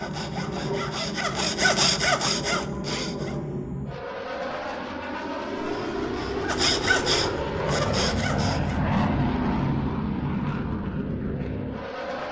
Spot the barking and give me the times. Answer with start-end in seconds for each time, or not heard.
not heard.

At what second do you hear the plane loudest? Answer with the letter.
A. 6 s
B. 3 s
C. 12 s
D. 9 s
D.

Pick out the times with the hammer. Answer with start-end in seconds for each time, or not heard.
not heard.